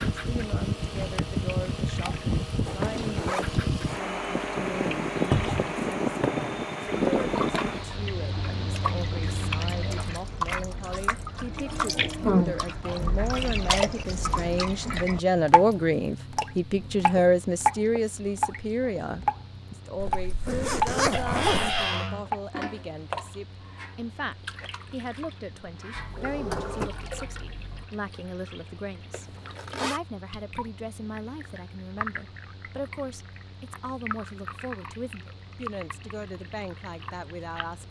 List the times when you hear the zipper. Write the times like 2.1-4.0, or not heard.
2.6-3.6, 20.0-21.9, 29.1-30.0.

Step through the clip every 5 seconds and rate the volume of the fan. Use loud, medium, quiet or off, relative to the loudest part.
loud, loud, quiet, quiet, quiet, quiet, quiet, quiet.